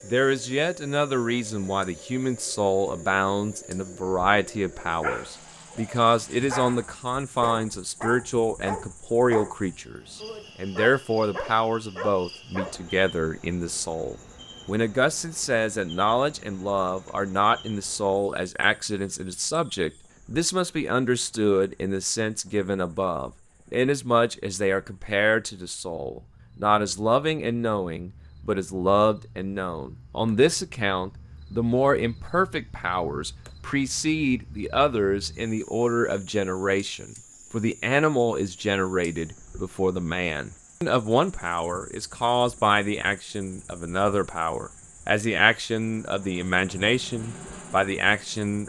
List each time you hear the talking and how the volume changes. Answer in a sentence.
You can hear the talking from 0.1 to 48.6 s, at a steady volume.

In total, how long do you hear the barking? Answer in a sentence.
You can hear the barking for 8 seconds altogether.